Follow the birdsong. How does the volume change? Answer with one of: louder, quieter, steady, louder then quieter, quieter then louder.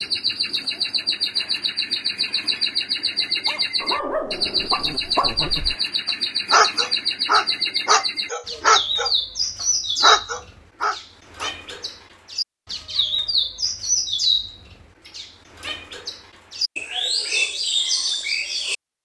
steady.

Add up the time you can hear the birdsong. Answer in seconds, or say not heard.
19 s.